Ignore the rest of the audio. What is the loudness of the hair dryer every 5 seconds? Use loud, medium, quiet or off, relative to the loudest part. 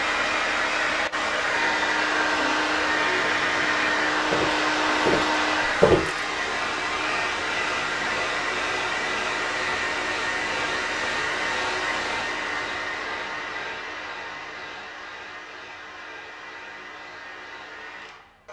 loud, loud, medium, quiet.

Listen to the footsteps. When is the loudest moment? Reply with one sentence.
The loudest moment of the footsteps is at 6 seconds.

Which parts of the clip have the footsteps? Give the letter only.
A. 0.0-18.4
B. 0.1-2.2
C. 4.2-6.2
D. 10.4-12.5
C.